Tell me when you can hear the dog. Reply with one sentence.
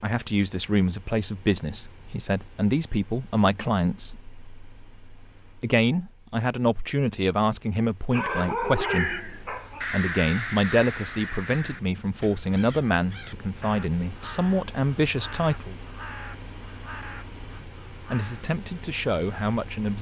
The dog can be heard from 8.1 to 9.8 s.